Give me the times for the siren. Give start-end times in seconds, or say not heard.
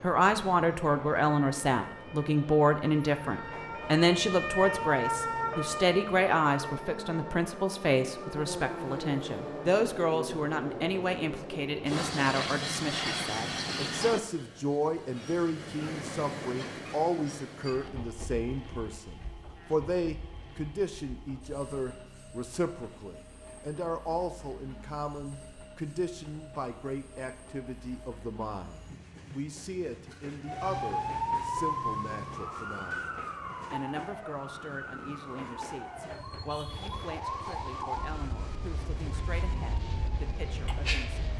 0.0-9.7, 30.4-41.3.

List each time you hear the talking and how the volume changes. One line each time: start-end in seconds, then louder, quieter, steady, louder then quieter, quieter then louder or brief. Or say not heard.
0.0-41.2 quieter.